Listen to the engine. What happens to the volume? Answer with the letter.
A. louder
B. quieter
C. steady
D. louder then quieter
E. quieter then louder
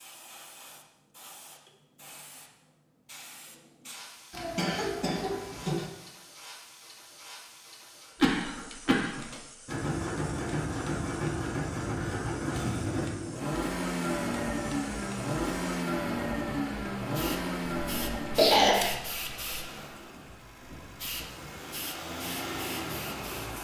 B.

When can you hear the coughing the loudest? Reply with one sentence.
The loudest moment of the coughing is at 19 seconds.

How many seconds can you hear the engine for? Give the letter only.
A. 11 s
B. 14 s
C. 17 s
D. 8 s
B.